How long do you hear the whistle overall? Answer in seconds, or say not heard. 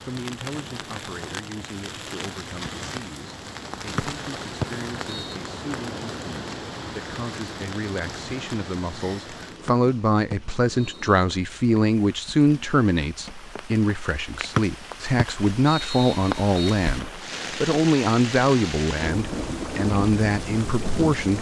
5 s.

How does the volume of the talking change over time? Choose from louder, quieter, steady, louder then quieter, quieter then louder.
louder.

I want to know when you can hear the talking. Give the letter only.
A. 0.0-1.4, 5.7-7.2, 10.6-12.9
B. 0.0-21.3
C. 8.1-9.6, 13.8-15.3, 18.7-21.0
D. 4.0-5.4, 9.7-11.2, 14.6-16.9
B.